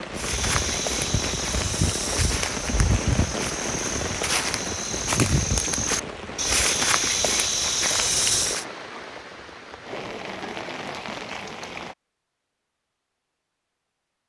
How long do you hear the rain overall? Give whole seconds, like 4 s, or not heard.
12 s.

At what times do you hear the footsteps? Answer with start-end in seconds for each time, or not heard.
0.1-8.7.